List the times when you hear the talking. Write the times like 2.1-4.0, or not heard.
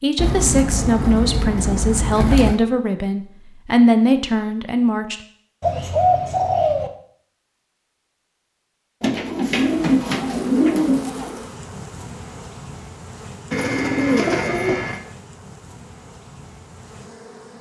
0.0-5.2.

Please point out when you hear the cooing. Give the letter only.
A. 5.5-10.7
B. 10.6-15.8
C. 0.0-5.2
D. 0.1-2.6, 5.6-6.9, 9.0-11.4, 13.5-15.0
D.